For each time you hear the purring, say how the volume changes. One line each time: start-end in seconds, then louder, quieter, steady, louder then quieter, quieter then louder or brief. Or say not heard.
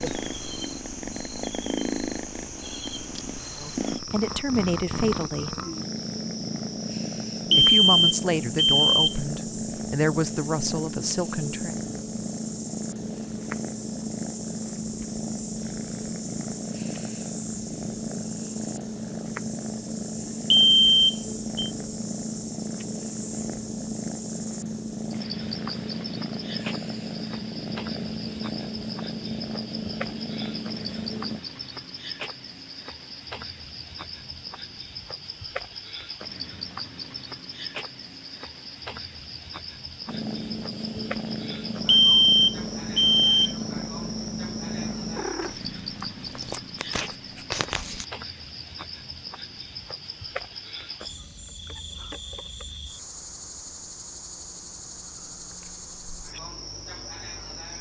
0.0-31.4 steady
40.0-48.0 steady.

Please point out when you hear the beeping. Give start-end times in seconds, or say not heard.
7.5-9.2, 20.5-21.7, 41.9-43.5.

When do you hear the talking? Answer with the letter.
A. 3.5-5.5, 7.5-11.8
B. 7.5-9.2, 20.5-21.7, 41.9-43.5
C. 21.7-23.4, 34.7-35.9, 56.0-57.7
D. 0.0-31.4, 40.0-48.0
A.